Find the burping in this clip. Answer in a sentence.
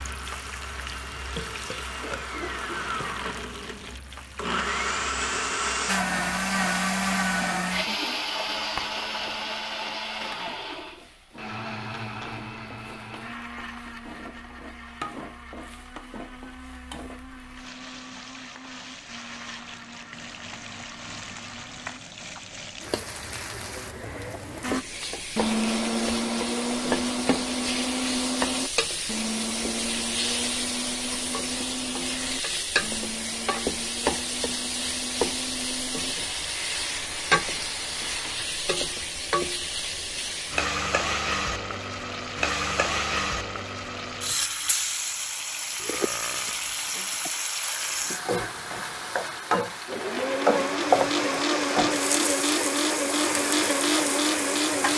You can hear the burping from 1.4 to 3.2 s and from 45.8 to 46.7 s.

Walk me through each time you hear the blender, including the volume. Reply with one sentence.
The blender can be heard from 0.0 to 22.0 s, getting louder then quieter; from 24.6 to 38.5 s, getting quieter; and from 48.4 to 54.9 s, getting louder.